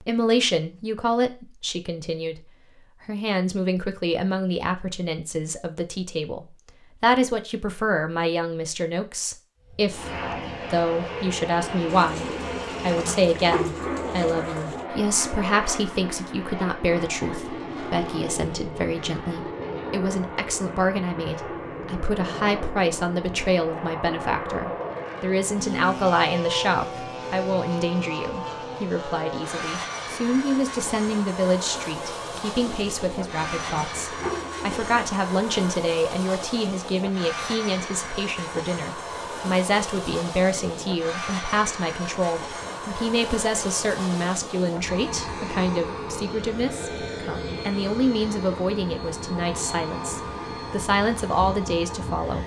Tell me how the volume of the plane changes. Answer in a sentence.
The volume of the plane stays about the same.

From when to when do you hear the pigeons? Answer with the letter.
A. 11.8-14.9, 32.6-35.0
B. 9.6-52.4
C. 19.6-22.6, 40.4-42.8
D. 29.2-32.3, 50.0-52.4
A.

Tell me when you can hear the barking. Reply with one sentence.
The barking can't be heard in this clip.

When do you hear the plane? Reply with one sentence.
You can hear the plane from 9.6 to 52.4 s.